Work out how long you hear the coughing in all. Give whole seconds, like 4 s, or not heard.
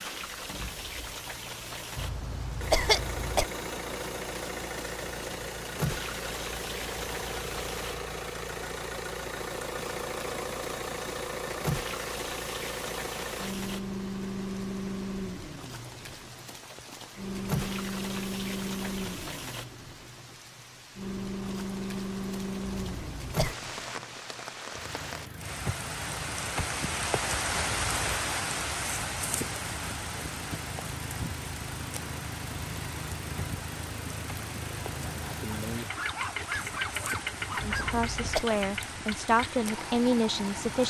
3 s.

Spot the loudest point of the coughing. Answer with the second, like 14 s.
3 s.